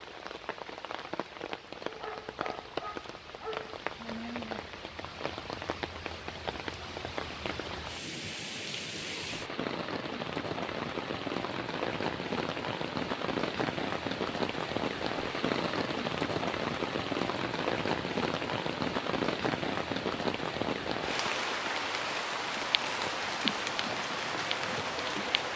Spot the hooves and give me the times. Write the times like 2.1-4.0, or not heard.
not heard.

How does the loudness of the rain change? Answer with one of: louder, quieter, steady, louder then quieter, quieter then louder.
louder.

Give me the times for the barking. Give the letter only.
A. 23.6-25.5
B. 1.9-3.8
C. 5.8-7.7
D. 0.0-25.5
B.